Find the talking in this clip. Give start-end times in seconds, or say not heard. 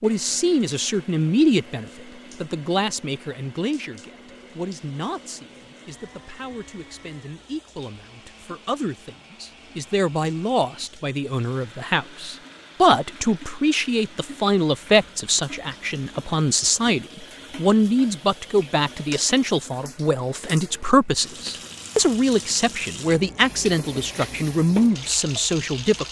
0.0-26.0.